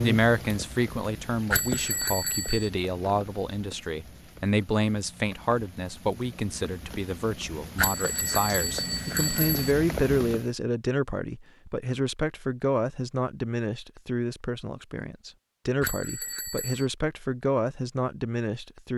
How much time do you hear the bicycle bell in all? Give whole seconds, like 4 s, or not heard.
4 s.